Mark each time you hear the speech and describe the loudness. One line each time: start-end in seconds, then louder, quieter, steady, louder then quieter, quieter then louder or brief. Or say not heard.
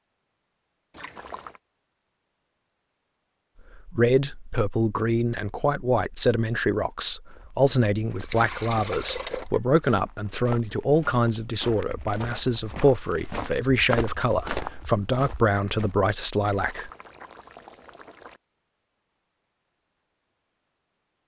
3.8-16.9 steady.